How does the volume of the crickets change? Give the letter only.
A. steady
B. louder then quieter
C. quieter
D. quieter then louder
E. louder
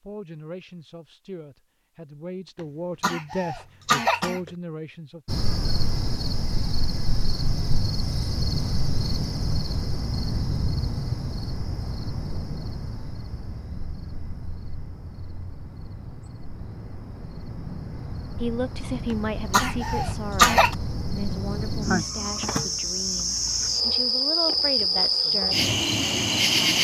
D.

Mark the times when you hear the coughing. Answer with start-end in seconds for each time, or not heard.
3.0-4.5, 19.1-20.8.